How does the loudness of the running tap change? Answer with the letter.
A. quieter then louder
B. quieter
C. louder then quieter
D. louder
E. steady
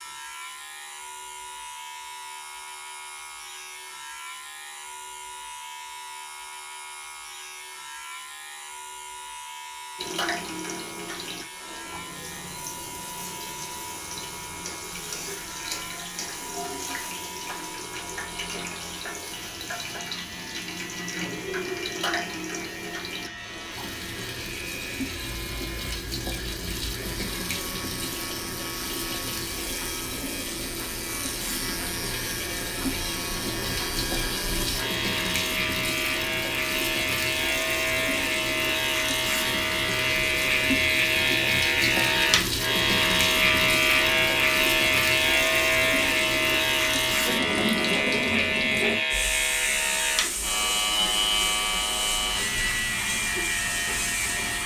D.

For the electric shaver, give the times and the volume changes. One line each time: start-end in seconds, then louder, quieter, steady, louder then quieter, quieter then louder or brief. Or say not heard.
0.0-54.6 louder.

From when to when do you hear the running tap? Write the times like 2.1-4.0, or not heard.
9.9-54.6.